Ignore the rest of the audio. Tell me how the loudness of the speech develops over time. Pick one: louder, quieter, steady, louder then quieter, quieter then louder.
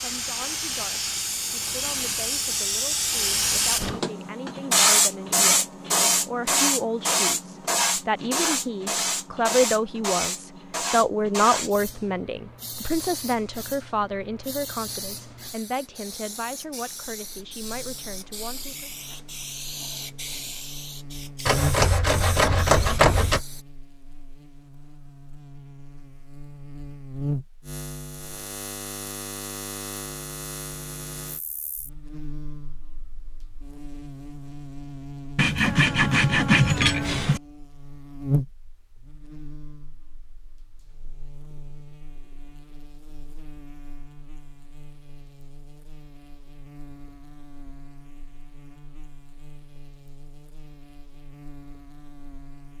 louder then quieter.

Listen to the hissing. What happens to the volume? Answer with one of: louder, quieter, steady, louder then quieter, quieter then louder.
quieter.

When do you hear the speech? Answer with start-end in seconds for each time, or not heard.
0.0-18.9.